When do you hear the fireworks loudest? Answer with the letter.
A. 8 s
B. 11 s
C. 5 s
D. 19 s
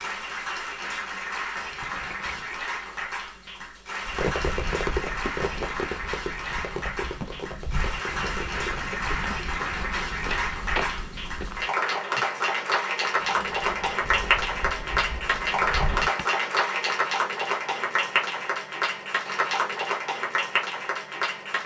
C.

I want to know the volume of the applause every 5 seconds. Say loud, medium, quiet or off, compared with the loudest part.
medium, medium, loud, loud, loud.